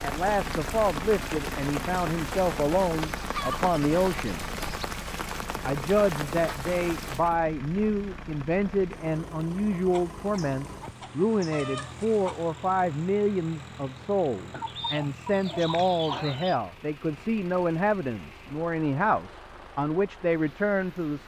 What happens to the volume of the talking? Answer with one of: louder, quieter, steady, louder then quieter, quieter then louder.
steady.